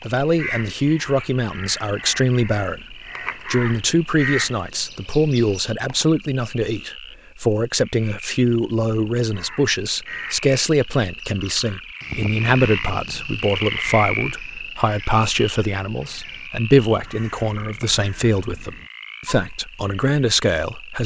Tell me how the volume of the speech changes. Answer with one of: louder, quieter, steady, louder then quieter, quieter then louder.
steady.